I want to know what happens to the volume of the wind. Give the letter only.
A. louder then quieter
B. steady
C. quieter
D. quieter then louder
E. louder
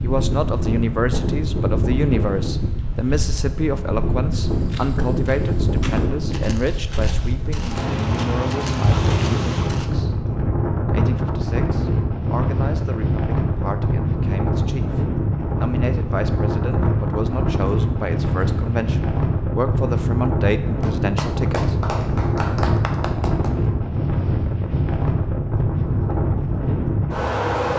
B.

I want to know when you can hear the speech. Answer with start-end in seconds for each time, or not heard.
0.0-10.2, 10.9-21.8.